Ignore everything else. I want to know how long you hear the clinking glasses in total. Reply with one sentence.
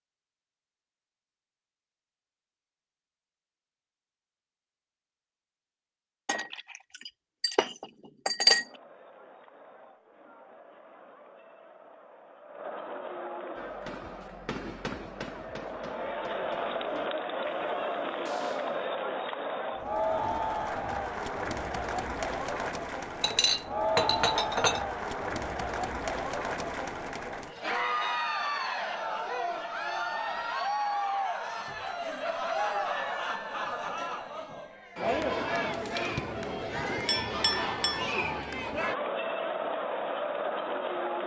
You can hear the clinking glasses for 5 seconds altogether.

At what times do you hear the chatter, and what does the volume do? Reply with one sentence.
The chatter can be heard from 8.6 to 41.2 s, getting louder.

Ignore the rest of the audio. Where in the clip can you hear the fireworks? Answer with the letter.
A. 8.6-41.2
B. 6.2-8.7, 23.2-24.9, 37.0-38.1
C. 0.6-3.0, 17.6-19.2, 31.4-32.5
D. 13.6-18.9
D.